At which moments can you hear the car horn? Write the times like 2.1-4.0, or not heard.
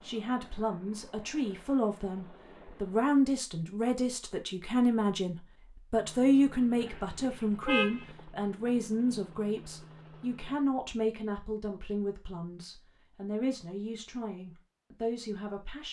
6.8-8.1.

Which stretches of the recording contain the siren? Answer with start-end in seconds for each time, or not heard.
not heard.